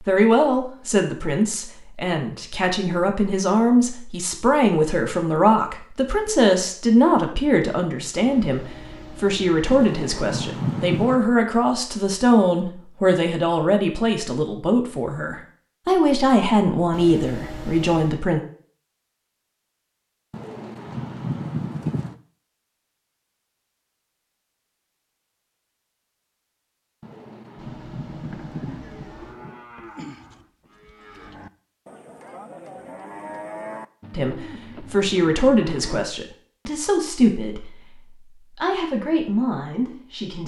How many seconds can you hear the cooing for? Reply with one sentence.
You can hear the cooing for 6 seconds altogether.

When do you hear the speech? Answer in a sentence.
You can hear the speech from 0.0 to 18.4 s and from 34.1 to 40.4 s.